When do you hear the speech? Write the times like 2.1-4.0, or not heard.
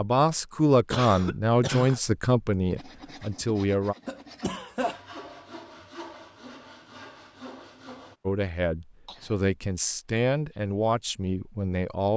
0.0-4.0, 8.2-12.1.